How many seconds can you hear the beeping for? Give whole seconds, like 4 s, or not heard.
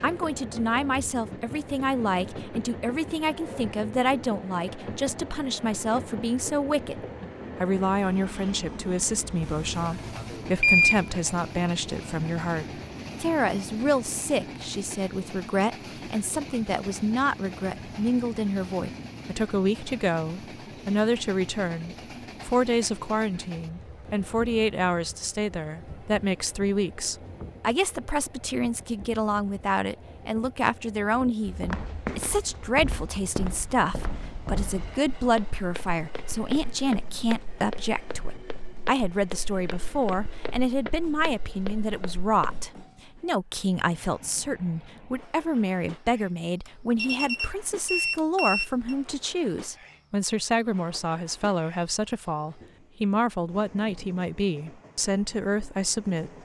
4 s.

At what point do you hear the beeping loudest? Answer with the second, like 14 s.
11 s.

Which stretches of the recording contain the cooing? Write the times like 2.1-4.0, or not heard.
not heard.